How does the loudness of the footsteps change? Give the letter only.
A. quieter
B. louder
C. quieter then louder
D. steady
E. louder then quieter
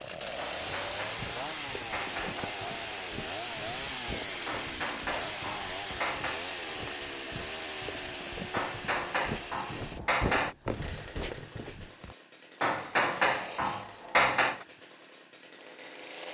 B.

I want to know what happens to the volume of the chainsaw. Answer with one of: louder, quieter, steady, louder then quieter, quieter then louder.
quieter.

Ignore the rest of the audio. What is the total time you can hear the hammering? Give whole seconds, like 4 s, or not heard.
8 s.